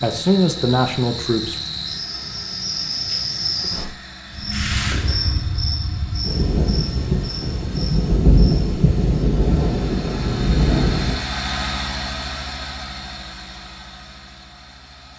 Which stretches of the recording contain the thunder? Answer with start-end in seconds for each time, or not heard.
6.2-11.2.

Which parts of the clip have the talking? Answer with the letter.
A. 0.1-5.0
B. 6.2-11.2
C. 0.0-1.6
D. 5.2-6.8
C.